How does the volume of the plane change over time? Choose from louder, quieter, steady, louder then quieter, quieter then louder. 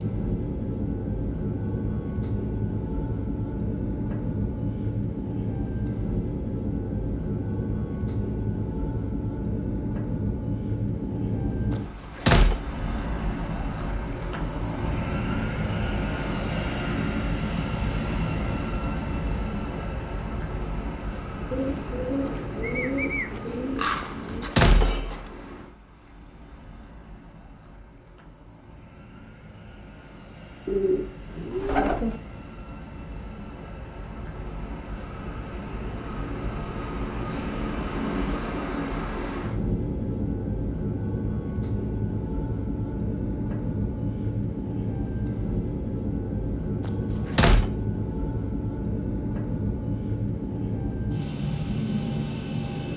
quieter then louder.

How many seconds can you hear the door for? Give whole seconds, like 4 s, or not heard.
3 s.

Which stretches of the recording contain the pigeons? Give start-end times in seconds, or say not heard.
21.5-24.5, 30.6-32.2.